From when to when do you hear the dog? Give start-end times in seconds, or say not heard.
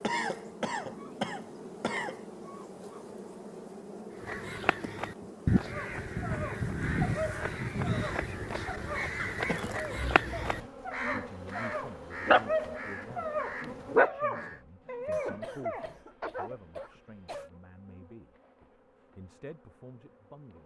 5.7-16.9.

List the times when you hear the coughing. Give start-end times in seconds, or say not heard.
0.0-2.1, 9.2-10.7, 15.1-17.5.